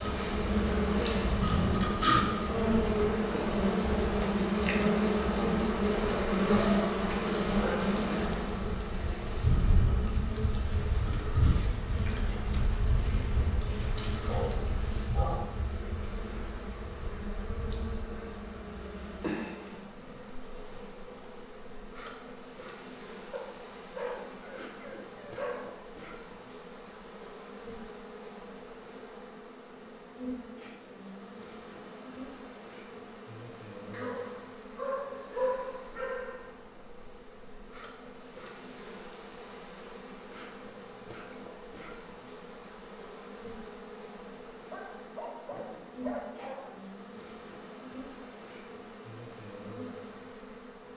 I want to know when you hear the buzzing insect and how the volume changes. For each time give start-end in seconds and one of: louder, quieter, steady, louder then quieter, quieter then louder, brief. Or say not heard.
0.0-50.9 quieter.